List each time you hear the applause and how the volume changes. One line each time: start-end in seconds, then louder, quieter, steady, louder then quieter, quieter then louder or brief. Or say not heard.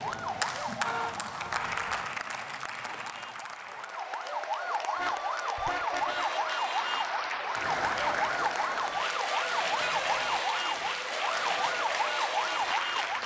0.0-13.2 quieter then louder.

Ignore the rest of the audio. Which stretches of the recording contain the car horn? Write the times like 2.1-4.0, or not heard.
0.8-2.0, 5.0-6.3, 9.8-10.4.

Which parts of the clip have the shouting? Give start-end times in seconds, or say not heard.
not heard.